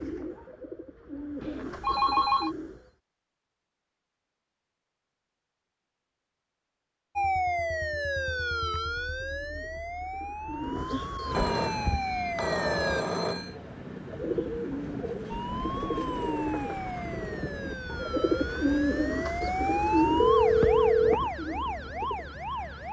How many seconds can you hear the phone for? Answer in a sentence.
The phone can be heard for 5 seconds in total.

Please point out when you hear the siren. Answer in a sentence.
The siren can be heard from 7.2 to 13.1 s and from 15.3 to 22.8 s.